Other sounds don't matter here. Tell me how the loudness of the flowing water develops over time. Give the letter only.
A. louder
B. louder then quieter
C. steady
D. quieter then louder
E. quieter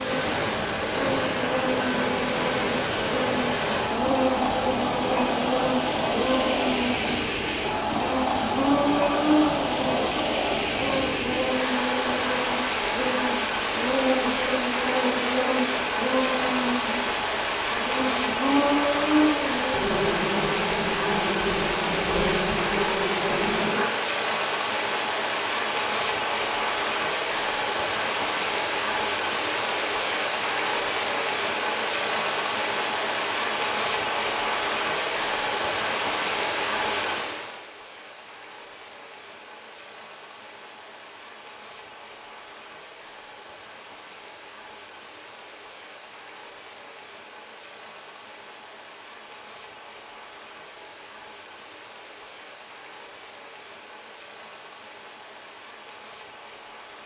E.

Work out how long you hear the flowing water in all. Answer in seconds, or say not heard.
57 s.